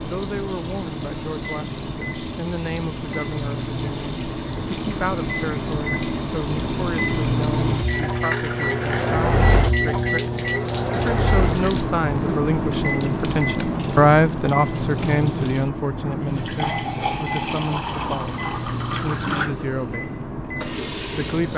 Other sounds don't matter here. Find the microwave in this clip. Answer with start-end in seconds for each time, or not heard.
0.0-21.5.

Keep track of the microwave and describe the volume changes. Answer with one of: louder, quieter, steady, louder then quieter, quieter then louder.
louder then quieter.